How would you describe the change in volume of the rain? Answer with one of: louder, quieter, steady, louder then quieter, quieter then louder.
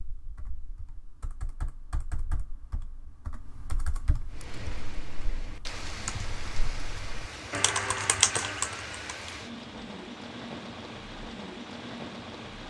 steady.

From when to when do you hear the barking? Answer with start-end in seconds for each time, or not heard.
not heard.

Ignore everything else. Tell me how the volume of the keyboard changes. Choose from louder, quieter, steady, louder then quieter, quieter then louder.
louder.